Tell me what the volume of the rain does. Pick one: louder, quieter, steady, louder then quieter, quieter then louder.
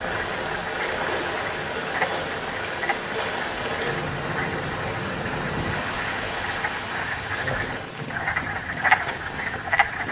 quieter.